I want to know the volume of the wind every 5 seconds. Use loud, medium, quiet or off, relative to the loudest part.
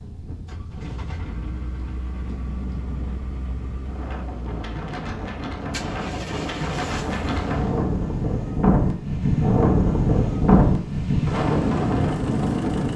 quiet, loud, loud.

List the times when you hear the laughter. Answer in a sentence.
The laughter can't be heard in this clip.